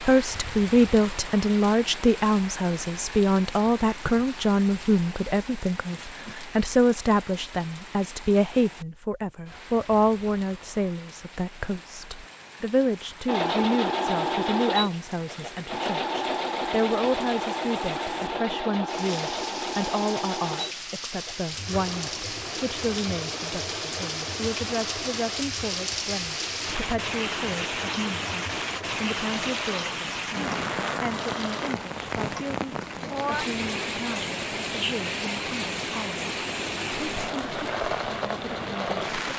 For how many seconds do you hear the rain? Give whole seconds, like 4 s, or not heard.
39 s.